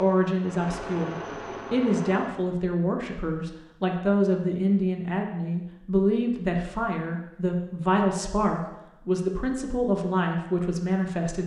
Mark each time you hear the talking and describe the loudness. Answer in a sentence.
The talking can be heard from 0.0 to 11.4 s, at a steady volume.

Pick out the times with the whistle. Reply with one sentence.
The whistle can't be heard in this clip.